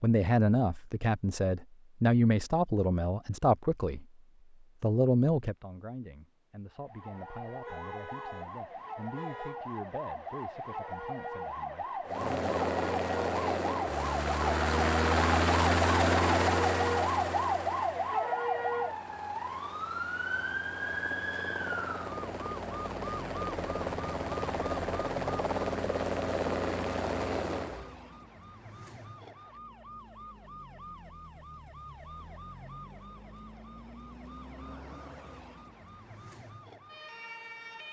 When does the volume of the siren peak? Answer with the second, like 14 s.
17 s.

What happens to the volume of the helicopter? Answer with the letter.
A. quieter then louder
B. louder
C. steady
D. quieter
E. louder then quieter
A.